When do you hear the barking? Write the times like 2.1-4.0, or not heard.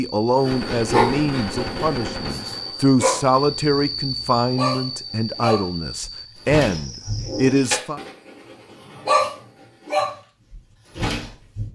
0.4-3.6, 4.4-8.3, 8.9-11.7.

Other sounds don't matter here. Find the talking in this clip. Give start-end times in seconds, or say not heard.
0.0-8.0.